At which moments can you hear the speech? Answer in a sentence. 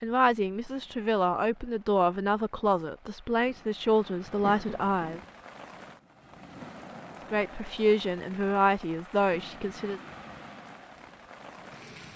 The speech can be heard from 0.0 to 5.2 s and from 7.3 to 10.0 s.